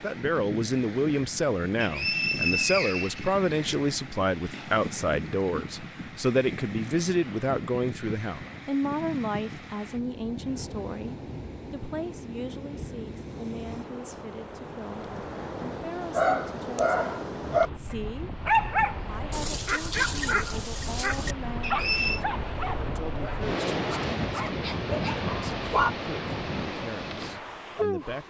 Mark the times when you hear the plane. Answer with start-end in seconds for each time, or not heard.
not heard.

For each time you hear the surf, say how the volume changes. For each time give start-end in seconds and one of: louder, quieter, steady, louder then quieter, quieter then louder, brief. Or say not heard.
0.0-28.2 louder.